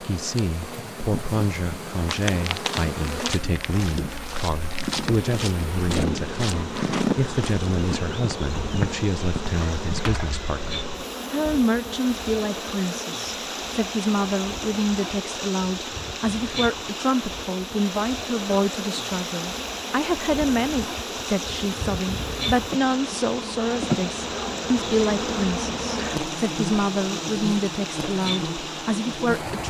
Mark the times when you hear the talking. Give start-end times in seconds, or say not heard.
0.0-29.6.